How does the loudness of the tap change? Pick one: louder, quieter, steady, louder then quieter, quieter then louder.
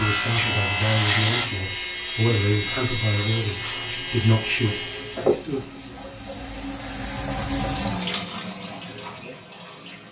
louder.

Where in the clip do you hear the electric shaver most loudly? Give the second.
1 s.